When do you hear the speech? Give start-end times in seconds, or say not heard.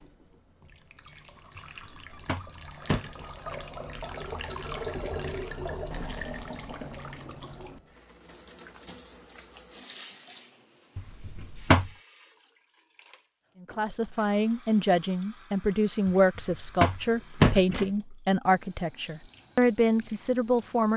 13.6-20.9.